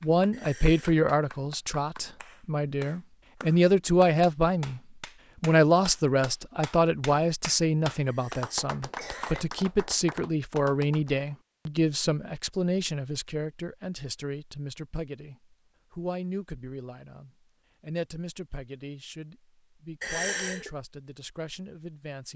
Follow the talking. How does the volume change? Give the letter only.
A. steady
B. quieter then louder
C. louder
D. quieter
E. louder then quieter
D.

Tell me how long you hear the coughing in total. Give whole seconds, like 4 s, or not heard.
3 s.